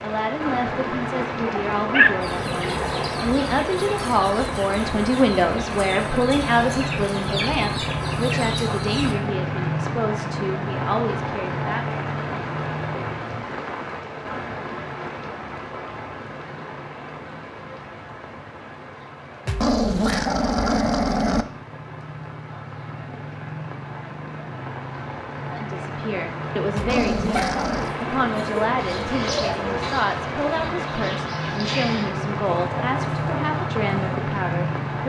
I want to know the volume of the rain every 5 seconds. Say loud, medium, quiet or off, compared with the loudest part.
loud, loud, loud, medium, medium, loud, loud.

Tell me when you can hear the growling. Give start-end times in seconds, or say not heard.
1.4-3.3, 19.4-21.4, 26.8-27.9.